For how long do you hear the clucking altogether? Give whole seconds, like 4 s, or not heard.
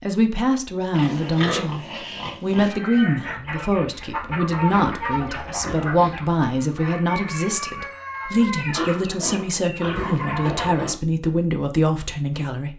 8 s.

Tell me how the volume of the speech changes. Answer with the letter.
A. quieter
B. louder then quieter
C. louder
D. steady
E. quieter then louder
D.